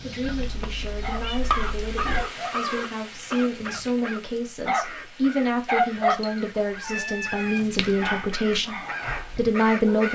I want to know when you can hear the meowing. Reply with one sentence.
The meowing can be heard from 0.2 to 2.2 s and from 6.0 to 7.6 s.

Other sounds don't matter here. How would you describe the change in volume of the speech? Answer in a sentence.
The volume of the speech goes up.